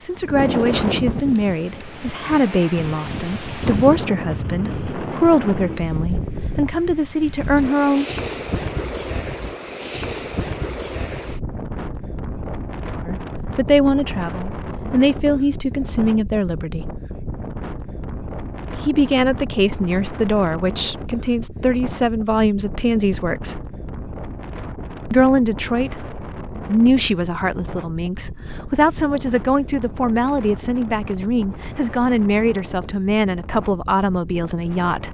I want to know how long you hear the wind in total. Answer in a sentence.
The wind can be heard for 35 seconds in total.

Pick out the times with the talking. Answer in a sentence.
The talking can be heard from 0.0 to 8.1 s, from 13.1 to 16.9 s, from 18.7 to 23.6 s and from 25.1 to 35.0 s.